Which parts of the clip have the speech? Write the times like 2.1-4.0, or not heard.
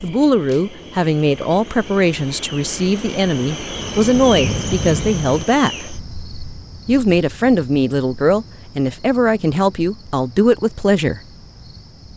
0.0-5.8, 6.8-11.2.